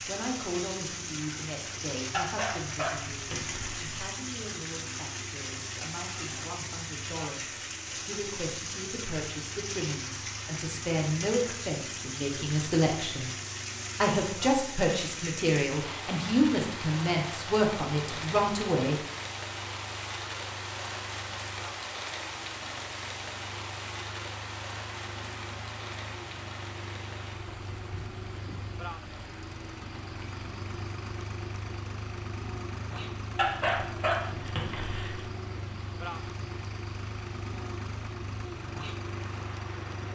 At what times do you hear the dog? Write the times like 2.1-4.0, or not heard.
2.1-3.9, 33.4-35.2.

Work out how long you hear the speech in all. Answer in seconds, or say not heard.
18 s.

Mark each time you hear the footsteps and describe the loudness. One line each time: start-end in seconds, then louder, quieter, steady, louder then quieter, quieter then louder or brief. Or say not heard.
not heard.